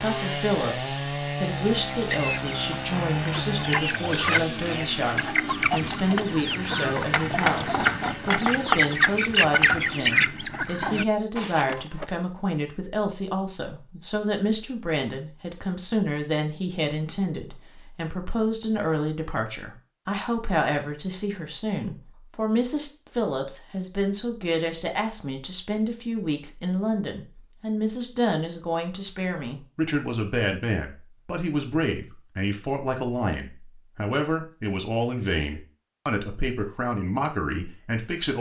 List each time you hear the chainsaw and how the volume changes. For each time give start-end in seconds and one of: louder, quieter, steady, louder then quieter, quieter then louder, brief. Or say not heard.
0.0-10.4 quieter.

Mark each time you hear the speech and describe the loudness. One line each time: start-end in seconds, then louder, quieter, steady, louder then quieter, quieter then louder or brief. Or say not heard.
0.0-38.3 steady.